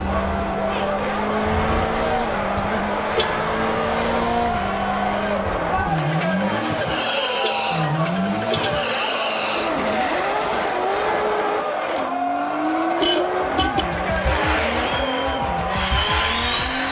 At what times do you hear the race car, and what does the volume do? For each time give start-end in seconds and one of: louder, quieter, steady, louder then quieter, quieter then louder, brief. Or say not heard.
0.0-16.8 steady.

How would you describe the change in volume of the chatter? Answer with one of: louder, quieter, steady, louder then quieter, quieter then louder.
steady.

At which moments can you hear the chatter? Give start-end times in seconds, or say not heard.
0.0-16.8.